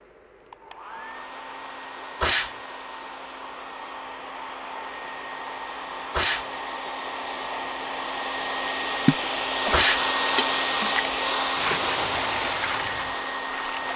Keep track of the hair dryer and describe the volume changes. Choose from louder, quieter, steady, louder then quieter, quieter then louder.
louder.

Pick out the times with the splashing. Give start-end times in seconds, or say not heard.
9.0-13.9.